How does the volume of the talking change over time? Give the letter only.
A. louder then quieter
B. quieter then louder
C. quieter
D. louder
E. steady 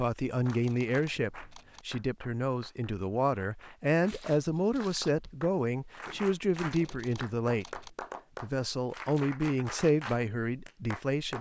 E.